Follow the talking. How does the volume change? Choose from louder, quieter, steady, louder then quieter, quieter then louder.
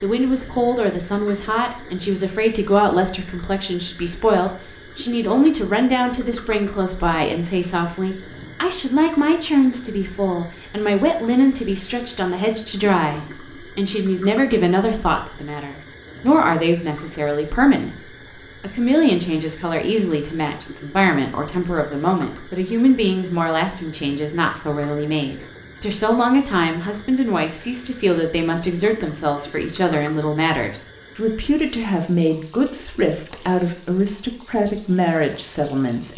steady.